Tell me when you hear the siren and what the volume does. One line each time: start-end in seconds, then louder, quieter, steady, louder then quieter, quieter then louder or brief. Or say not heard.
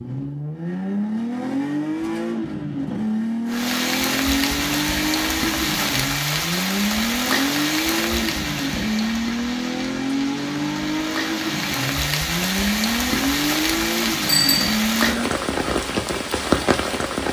not heard.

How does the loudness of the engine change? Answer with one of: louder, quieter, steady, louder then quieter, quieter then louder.
steady.